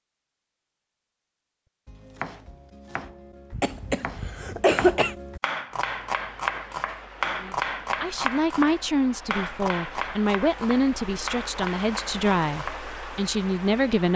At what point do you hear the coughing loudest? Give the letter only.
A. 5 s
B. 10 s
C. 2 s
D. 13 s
A.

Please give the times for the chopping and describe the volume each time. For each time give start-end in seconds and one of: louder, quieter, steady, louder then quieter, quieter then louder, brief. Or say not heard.
1.9-12.9 louder then quieter.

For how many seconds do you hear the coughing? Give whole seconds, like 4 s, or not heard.
2 s.